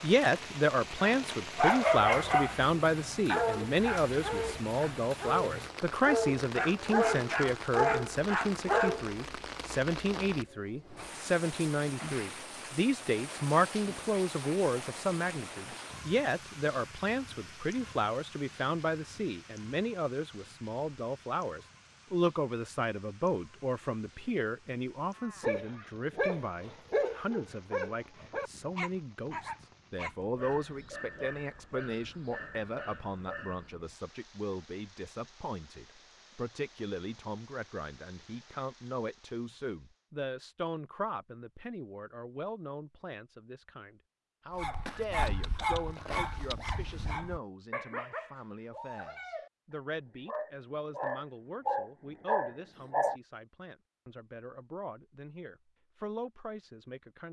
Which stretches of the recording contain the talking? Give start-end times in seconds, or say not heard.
0.0-57.2.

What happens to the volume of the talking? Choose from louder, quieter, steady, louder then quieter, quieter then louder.
quieter.